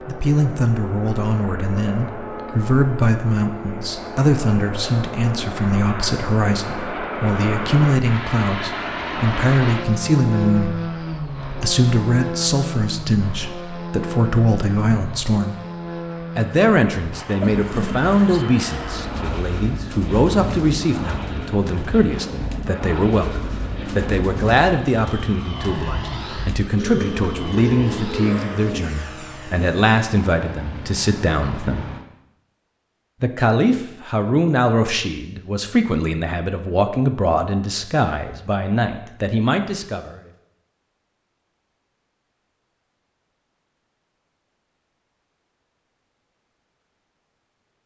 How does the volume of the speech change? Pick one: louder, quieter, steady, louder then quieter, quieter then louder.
steady.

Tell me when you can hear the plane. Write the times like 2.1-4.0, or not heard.
0.0-32.0.